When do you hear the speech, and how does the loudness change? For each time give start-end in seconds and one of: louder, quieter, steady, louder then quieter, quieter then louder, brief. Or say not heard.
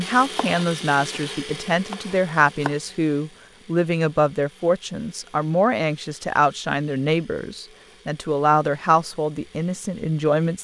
0.0-10.5 steady.